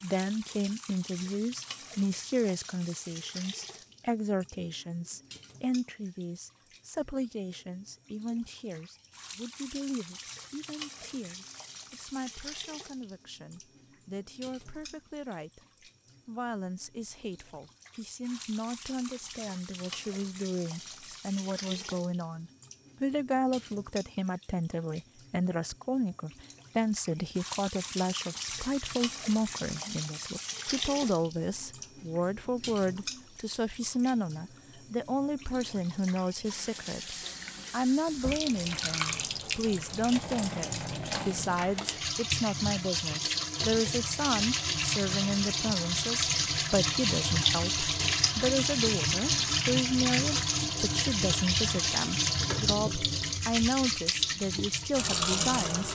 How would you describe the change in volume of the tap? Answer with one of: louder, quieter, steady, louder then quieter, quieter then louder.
louder.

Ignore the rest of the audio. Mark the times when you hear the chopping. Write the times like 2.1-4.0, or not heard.
not heard.